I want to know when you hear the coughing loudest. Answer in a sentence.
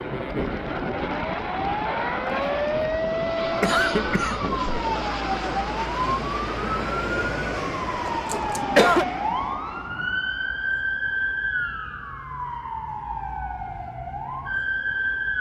The volume of the coughing peaks at 9 seconds.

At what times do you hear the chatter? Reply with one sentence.
The chatter can't be heard in this clip.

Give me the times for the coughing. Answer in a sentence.
You can hear the coughing from 3.4 to 4.7 s and from 8.1 to 9.1 s.